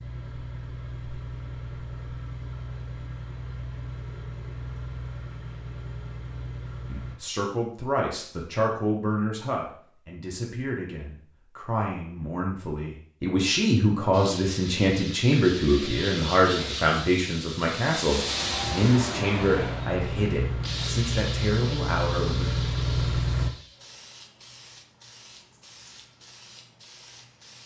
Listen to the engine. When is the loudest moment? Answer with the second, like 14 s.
23 s.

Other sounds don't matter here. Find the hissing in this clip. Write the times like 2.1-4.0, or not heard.
14.1-27.6.